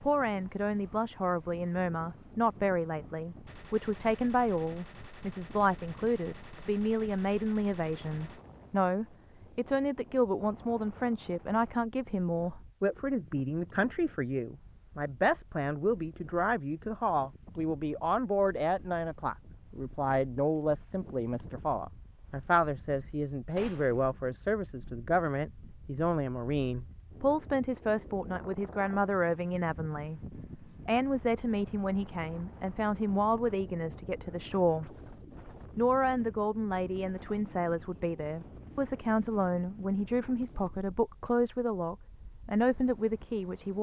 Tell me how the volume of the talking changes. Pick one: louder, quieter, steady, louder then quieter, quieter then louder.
steady.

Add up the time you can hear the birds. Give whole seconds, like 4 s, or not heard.
not heard.